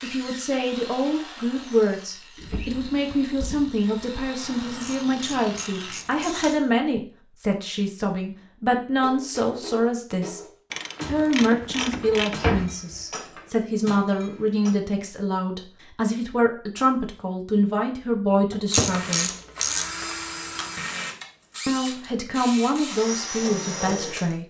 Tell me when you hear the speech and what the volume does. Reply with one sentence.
You can hear the speech from 0.0 to 10.4 s, at a steady volume; from 11.1 to 19.3 s, at a steady volume; and briefly from 21.6 to 24.4 s.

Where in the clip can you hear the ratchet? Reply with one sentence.
You can hear the ratchet from 4.4 to 6.6 s, from 10.7 to 12.4 s and from 18.7 to 20.7 s.